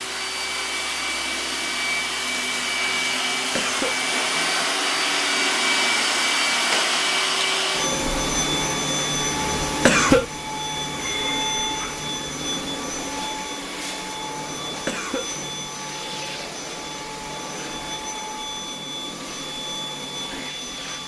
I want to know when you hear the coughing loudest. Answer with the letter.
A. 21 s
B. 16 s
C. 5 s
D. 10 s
D.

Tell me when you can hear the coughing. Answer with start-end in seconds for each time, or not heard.
3.5-4.0, 9.8-10.2, 14.8-15.3.